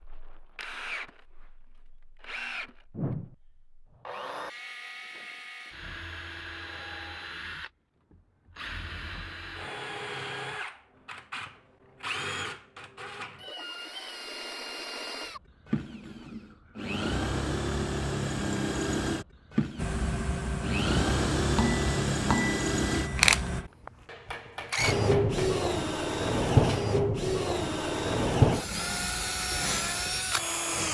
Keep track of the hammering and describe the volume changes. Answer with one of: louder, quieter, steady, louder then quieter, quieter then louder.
quieter.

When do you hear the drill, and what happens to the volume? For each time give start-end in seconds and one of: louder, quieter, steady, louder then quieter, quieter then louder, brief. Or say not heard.
0.0-30.8 louder.